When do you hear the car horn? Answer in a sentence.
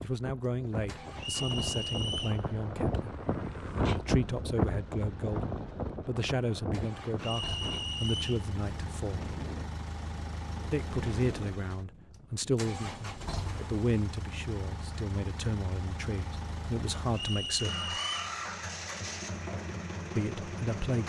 You can't hear the car horn here.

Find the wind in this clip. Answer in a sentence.
The wind can be heard from 0.0 to 13.8 s.